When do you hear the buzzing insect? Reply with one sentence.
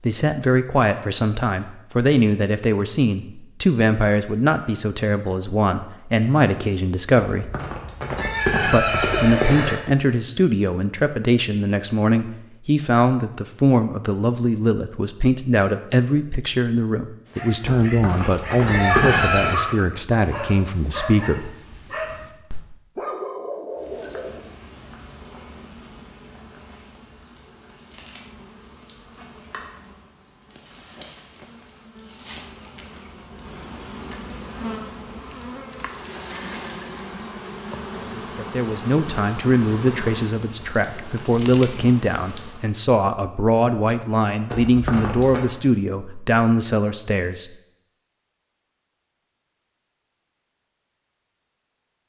You can hear the buzzing insect from 23.7 to 42.7 s.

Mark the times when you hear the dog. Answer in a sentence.
You can hear the dog from 17.3 to 24.4 s.